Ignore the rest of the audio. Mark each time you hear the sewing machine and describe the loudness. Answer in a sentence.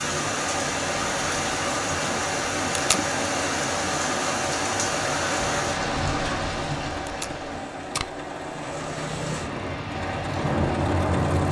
You can hear the sewing machine from 0.2 to 11.4 s, at a steady volume.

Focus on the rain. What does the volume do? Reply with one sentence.
The volume of the rain goes down, then up.